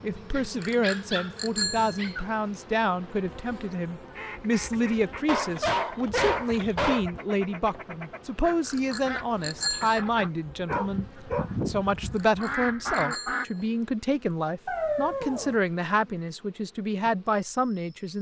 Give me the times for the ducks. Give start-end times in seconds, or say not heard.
4.2-13.4.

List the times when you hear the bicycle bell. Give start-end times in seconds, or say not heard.
0.6-2.1, 8.7-10.0, 12.2-13.7.